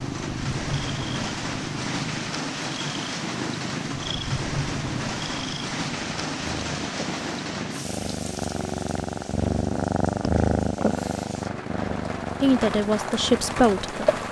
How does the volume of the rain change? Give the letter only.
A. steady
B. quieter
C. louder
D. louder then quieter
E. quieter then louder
E.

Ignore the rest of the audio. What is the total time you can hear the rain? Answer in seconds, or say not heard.
14 s.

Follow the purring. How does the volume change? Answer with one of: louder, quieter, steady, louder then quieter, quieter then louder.
louder then quieter.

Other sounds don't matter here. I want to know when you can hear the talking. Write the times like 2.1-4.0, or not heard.
12.4-14.0.